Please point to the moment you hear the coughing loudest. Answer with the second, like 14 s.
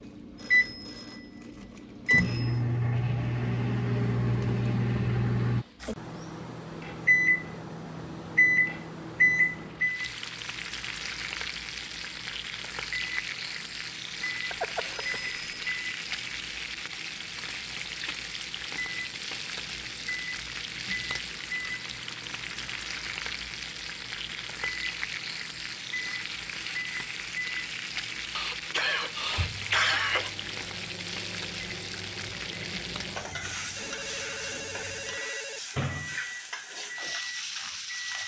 30 s.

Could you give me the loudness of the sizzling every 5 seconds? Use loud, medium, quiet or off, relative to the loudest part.
quiet, quiet, loud, loud, loud, loud, loud, loud.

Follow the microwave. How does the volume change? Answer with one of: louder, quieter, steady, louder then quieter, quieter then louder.
quieter.